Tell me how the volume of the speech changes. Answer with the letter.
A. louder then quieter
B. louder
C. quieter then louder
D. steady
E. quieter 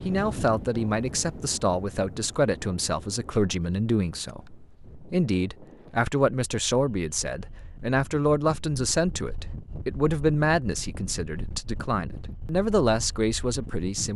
D.